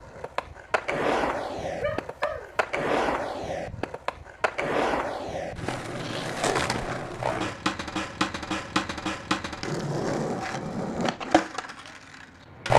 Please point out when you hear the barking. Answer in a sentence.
You can hear the barking from 1.8 to 2.5 s.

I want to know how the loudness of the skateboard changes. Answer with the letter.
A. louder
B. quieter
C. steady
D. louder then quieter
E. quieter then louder
C.